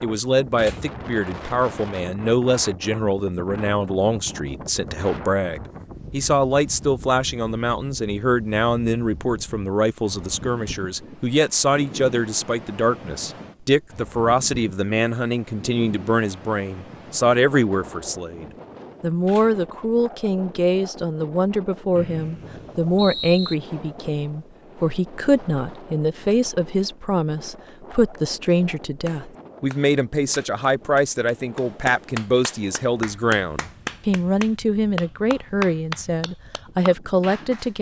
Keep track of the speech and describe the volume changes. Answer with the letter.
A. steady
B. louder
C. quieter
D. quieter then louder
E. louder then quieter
A.